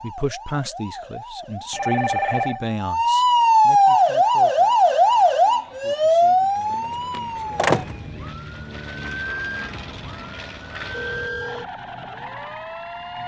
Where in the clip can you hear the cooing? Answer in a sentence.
The cooing can't be heard in this clip.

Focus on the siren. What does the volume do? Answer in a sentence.
The volume of the siren goes up, then down.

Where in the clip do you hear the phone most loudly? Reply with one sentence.
The volume of the phone peaks at 2 seconds.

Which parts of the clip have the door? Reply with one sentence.
You can hear the door from 6.7 to 8.1 s.